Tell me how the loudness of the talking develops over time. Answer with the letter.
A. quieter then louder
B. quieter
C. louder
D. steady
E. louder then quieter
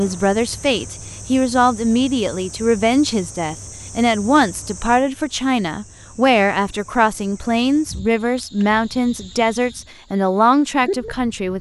D.